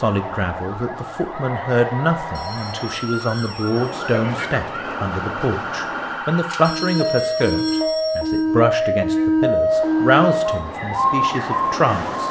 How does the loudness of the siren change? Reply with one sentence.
The loudness of the siren goes up.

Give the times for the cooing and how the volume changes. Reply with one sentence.
You can't hear the cooing here.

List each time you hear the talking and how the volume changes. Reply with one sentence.
You can hear the talking from 0.0 to 12.2 s, at a steady volume.